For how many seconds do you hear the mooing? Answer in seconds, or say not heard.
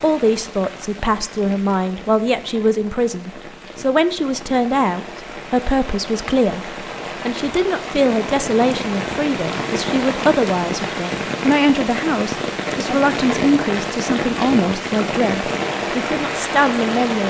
not heard.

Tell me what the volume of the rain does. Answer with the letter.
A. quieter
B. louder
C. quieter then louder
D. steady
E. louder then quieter
B.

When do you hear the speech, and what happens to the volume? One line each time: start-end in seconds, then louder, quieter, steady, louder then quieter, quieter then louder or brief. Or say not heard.
0.0-17.2 steady.